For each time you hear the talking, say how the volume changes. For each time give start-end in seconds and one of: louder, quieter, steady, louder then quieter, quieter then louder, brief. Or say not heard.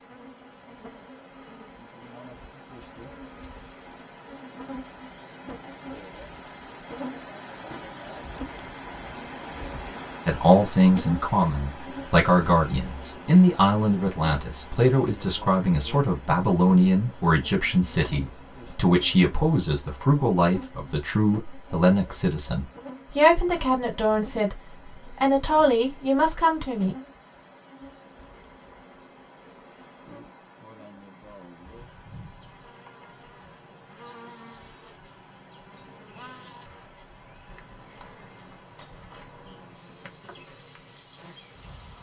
10.2-26.9 steady.